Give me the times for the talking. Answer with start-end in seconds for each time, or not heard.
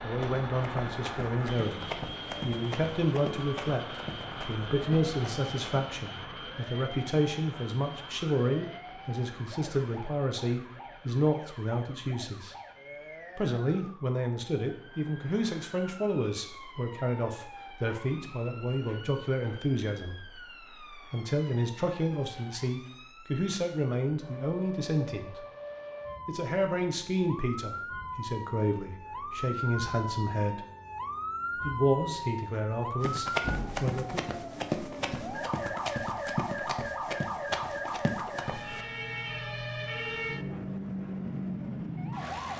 0.0-12.6, 13.3-25.4, 26.2-30.6, 31.6-34.4.